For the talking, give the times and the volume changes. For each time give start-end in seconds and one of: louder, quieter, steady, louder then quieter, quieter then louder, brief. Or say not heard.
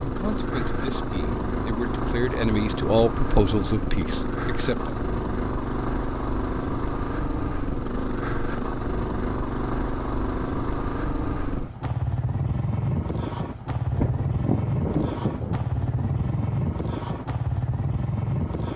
0.0-5.0 louder then quieter.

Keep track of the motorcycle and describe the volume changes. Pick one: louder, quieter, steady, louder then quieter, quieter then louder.
steady.